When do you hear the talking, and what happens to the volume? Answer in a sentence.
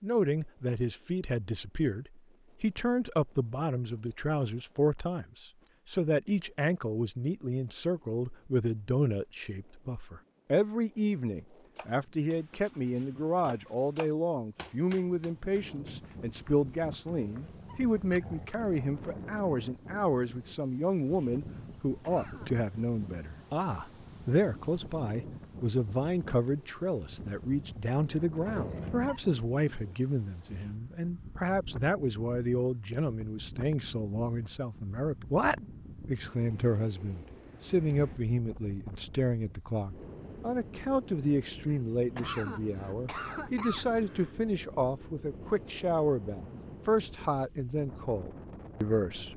You can hear the talking from 0.0 to 49.3 s, at a steady volume.